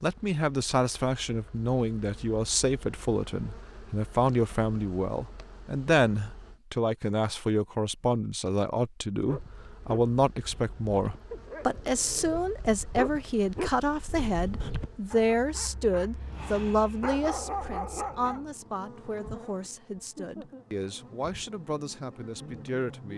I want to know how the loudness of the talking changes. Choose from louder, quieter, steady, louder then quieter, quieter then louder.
quieter.